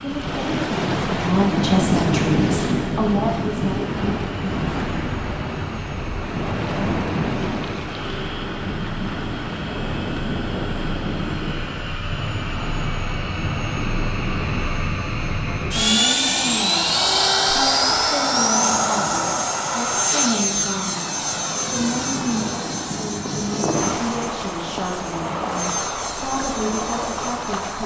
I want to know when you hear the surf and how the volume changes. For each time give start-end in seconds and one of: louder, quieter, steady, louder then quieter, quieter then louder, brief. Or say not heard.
0.0-27.8 quieter then louder.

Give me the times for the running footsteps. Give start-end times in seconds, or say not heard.
not heard.